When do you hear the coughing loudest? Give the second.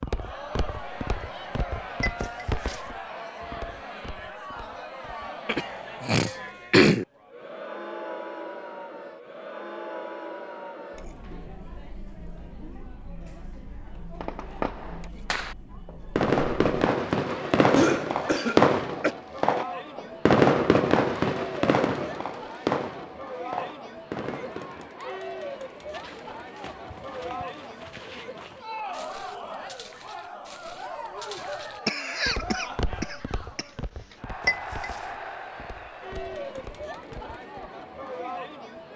7 s.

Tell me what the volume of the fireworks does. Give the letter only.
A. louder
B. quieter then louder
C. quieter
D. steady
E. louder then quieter
E.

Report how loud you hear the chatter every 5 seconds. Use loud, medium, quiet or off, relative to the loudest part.
loud, loud, medium, loud, loud, loud, loud, loud.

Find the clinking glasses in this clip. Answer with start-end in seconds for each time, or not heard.
2.0-2.5, 34.5-35.0.